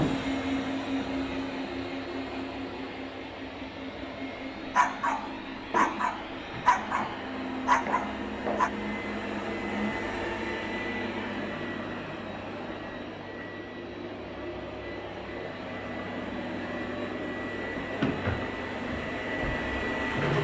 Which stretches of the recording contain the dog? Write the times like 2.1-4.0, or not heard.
4.8-8.7.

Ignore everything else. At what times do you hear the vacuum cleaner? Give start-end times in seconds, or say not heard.
0.0-20.3.